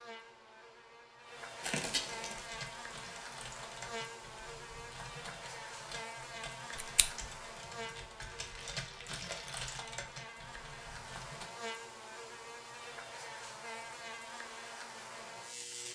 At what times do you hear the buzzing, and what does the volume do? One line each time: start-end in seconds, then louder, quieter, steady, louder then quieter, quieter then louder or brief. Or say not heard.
0.0-15.8 steady.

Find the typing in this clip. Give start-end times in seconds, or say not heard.
2.3-11.5.